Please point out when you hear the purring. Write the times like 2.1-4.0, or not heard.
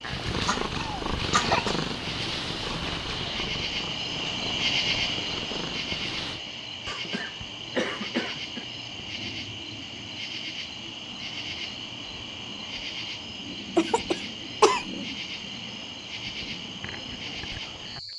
0.0-6.4.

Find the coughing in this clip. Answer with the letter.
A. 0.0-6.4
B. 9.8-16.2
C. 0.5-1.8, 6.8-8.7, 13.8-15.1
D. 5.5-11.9
C.